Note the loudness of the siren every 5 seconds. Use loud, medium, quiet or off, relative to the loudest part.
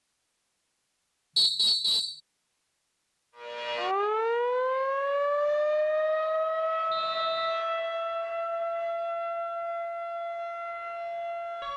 loud, loud, medium.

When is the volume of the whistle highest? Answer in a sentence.
The loudest moment of the whistle is at 2 seconds.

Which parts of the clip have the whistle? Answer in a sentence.
The whistle can be heard from 1.4 to 2.2 s and from 6.9 to 7.7 s.